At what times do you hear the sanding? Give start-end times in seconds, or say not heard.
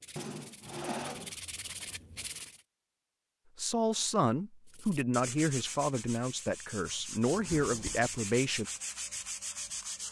0.0-2.6, 4.7-10.0.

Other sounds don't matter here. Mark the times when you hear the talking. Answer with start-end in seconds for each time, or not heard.
3.5-8.7.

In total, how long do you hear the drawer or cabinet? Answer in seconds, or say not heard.
2 s.